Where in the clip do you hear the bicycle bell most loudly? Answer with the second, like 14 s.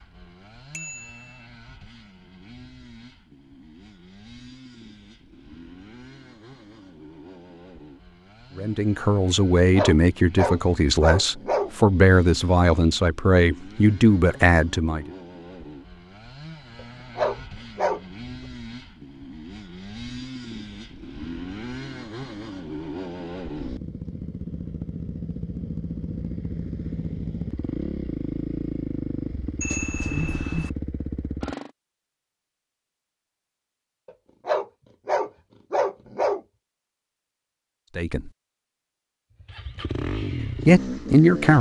30 s.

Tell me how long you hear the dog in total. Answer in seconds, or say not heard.
6 s.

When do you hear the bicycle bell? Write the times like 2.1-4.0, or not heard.
0.7-1.4, 29.6-30.7.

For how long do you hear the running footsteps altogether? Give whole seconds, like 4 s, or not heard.
not heard.